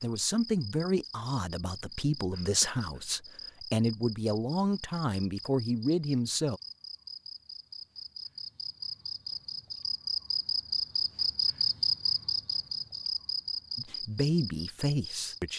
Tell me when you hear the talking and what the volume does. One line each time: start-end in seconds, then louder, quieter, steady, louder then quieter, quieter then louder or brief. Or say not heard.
0.0-6.6 steady
13.8-15.5 brief.